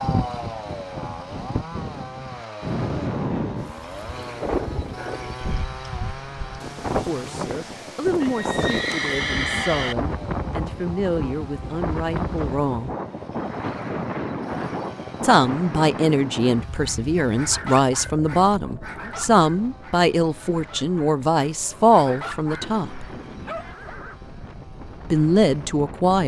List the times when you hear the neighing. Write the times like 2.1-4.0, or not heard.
8.2-9.9, 22.4-24.2.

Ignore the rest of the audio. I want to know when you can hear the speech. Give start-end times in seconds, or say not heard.
7.0-12.9, 15.2-23.1, 25.1-26.2.